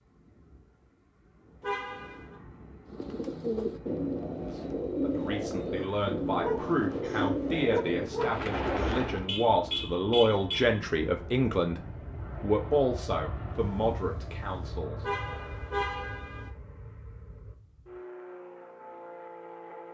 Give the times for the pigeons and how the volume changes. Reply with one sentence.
The pigeons can be heard from 2.9 to 9.3 s, at a steady volume.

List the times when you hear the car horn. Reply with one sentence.
You can hear the car horn from 1.6 to 2.4 s, from 9.2 to 10.8 s and from 15.0 to 16.5 s.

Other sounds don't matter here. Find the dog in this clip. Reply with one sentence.
The dog can be heard from 5.8 to 9.0 s.